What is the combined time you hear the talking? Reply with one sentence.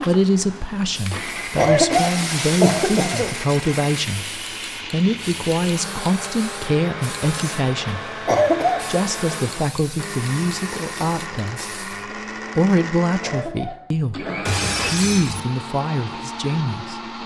You can hear the talking for 15 seconds altogether.